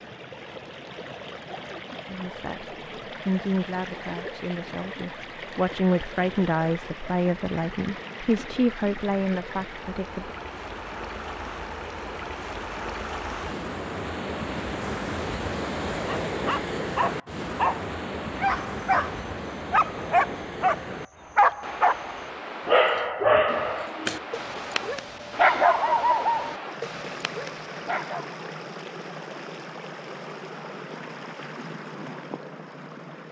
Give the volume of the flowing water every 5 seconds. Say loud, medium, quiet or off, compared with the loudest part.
medium, medium, loud, loud, medium, medium, medium.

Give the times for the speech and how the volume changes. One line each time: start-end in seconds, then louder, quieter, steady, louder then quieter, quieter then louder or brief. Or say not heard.
2.0-10.3 quieter then louder.